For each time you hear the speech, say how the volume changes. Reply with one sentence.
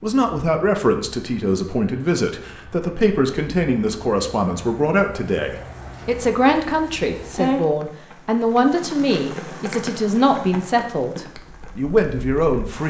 The speech can be heard from 0.0 to 12.8 s, at a steady volume.